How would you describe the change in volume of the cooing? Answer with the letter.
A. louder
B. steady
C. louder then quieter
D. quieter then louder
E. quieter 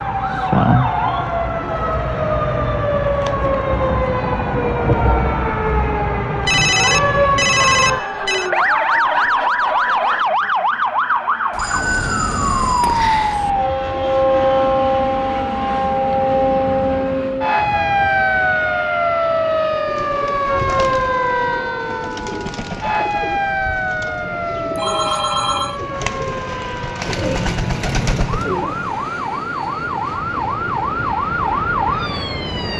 A.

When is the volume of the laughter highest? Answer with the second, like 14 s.
9 s.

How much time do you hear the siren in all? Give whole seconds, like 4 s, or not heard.
33 s.